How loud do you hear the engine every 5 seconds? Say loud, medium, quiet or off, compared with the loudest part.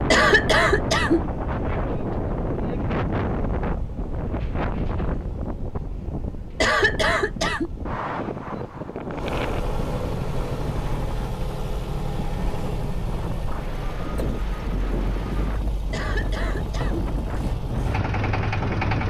quiet, medium, loud, loud.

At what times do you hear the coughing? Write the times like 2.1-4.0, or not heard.
0.1-1.2, 6.6-7.7, 15.9-17.1.